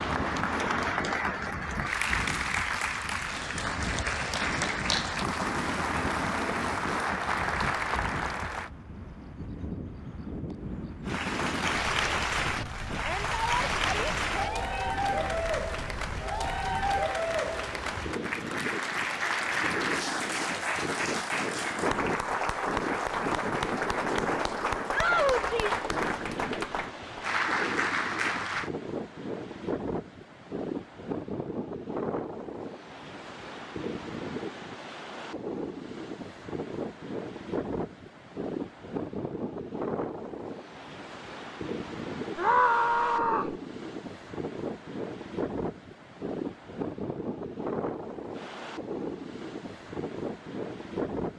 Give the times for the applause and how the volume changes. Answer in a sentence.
You can hear the applause from 0.0 to 8.7 s, at a steady volume; and from 11.1 to 28.7 s, at a steady volume.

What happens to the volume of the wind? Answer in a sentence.
The volume of the wind stays about the same.